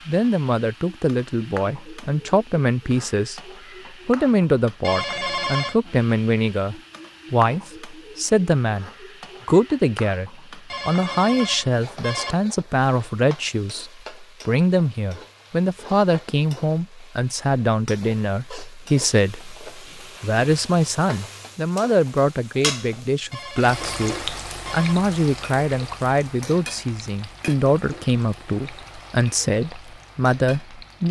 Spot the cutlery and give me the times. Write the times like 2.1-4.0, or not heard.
not heard.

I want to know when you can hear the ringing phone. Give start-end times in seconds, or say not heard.
4.8-5.8, 10.7-12.3, 23.3-24.9.